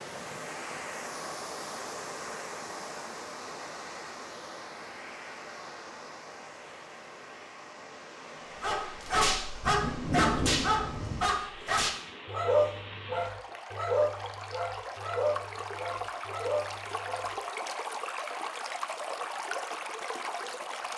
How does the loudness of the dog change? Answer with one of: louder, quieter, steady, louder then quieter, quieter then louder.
quieter.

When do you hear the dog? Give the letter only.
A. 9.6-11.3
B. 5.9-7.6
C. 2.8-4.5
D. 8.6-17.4
D.